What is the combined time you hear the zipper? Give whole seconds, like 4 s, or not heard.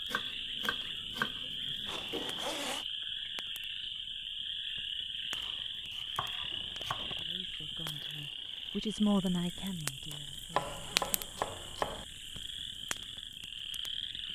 3 s.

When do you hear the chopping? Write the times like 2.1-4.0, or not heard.
0.1-2.4, 5.3-7.0, 10.5-12.1.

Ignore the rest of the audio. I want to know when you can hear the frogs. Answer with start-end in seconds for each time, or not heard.
0.0-14.3.